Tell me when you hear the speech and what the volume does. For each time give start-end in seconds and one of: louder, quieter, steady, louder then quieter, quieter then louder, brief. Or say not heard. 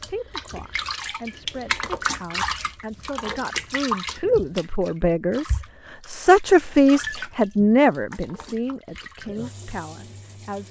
0.0-10.6 louder then quieter.